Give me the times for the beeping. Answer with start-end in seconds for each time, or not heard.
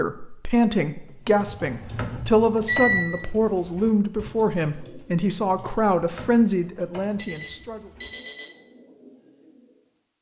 1.4-3.1, 7.2-8.5.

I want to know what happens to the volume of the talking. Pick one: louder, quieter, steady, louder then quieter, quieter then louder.
steady.